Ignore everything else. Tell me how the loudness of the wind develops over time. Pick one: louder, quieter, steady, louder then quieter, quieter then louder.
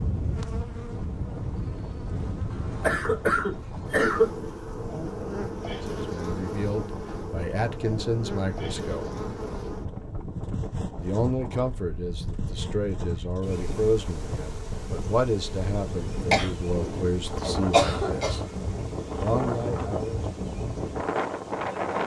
louder.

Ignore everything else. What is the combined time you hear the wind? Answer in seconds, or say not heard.
22 s.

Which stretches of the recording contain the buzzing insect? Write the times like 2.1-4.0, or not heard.
0.0-22.0.